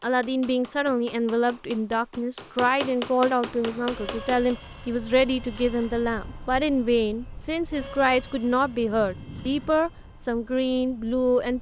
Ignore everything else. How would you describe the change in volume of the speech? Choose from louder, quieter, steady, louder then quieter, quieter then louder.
steady.